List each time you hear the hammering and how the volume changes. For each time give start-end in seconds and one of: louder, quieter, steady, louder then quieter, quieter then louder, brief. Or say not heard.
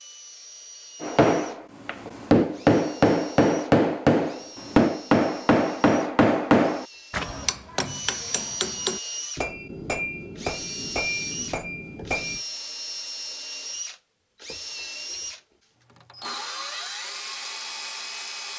1.0-12.4 quieter.